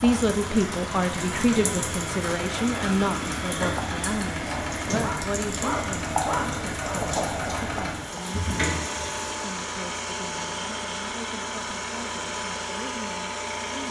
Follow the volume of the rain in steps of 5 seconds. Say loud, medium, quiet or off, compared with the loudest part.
loud, loud, off.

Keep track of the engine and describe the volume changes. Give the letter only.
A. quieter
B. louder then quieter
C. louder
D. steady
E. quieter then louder
D.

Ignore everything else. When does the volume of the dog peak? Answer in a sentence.
The loudest moment of the dog is at 6 seconds.